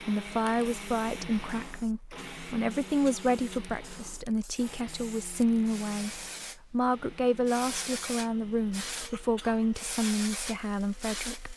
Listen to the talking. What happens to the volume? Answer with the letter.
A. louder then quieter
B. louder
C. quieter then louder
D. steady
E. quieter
D.